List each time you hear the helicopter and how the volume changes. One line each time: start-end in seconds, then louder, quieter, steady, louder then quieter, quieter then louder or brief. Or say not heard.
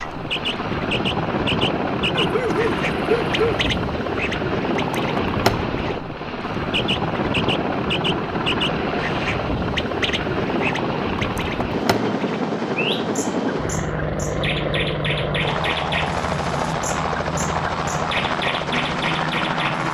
0.0-19.8 steady.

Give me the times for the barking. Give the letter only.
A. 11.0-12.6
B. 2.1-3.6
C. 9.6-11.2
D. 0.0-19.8
B.